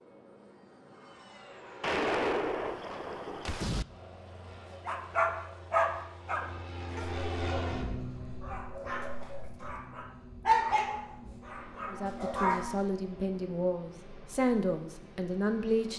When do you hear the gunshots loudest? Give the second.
2 s.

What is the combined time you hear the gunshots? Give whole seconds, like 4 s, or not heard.
2 s.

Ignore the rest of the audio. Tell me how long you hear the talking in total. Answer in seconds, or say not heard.
4 s.